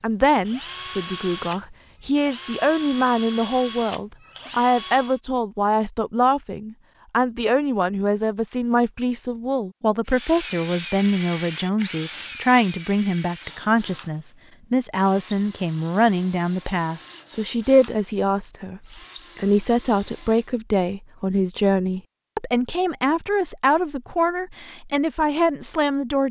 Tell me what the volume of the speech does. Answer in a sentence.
The volume of the speech stays about the same.